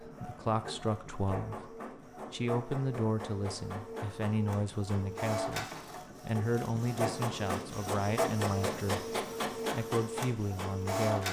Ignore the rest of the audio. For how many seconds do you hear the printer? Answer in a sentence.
You can hear the printer for 11 seconds altogether.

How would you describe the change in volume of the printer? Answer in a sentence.
The volume of the printer goes up.